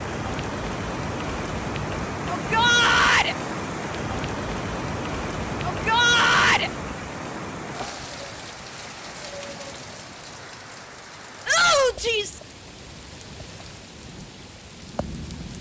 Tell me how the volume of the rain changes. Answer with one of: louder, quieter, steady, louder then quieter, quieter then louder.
quieter.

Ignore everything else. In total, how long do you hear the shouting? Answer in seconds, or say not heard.
3 s.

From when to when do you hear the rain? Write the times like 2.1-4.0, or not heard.
0.0-15.5.